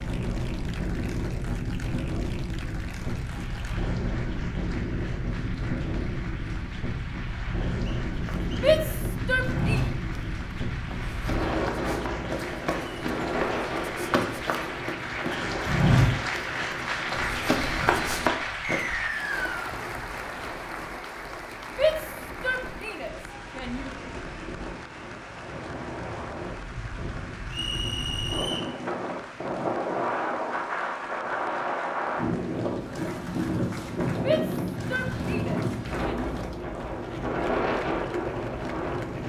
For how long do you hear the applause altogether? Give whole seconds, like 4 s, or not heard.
39 s.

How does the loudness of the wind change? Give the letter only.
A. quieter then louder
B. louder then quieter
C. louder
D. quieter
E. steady
A.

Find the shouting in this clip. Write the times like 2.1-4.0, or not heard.
8.6-9.8, 21.7-23.9, 34.1-36.4.